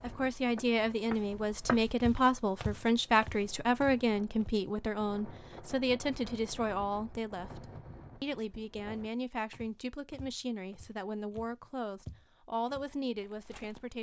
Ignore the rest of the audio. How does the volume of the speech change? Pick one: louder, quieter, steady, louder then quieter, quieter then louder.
quieter.